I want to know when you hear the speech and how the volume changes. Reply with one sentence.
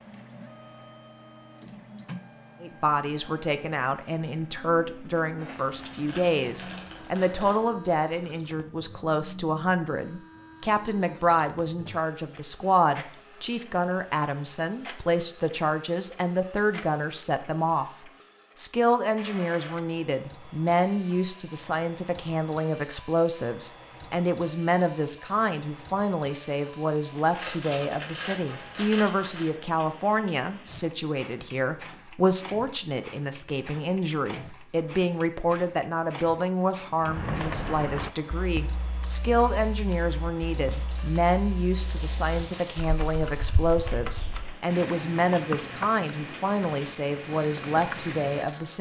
The speech can be heard from 2.6 to 48.7 s, at a steady volume.